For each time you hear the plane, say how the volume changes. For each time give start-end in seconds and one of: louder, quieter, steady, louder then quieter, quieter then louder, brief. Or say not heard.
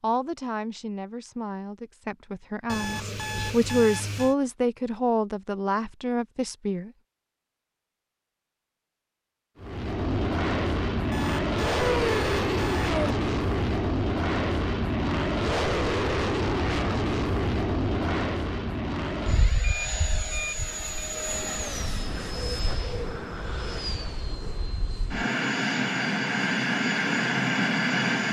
9.6-28.2 quieter then louder.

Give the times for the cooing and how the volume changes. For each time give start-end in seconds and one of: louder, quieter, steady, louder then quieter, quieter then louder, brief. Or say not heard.
not heard.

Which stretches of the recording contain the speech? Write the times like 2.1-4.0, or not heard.
0.0-6.9.